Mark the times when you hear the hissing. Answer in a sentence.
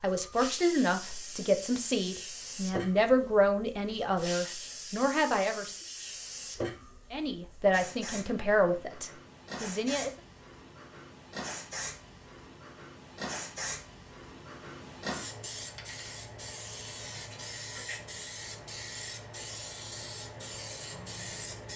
You can hear the hissing from 0.0 to 21.7 s.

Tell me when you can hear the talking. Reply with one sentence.
You can hear the talking from 0.0 to 5.8 s and from 7.1 to 10.1 s.